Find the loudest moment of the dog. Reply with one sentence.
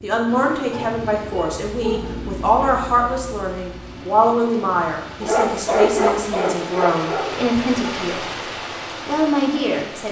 The volume of the dog peaks at 6 seconds.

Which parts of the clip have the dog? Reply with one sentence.
The dog can be heard from 0.7 to 2.8 s and from 5.2 to 7.5 s.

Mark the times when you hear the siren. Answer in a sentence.
The siren can't be heard in this clip.